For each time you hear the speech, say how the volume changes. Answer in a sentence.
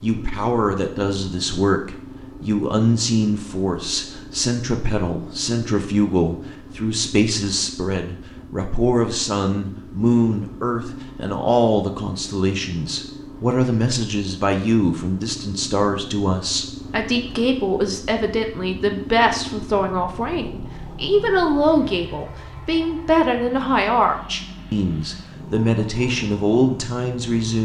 You can hear the speech from 0.0 to 27.5 s, at a steady volume.